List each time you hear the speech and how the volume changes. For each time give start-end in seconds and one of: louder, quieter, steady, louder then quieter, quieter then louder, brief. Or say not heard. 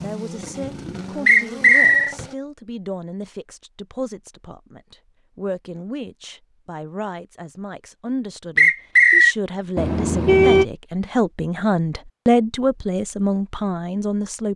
0.0-14.5 louder.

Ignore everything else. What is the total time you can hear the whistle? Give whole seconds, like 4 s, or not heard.
2 s.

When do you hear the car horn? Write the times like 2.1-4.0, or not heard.
9.8-10.7.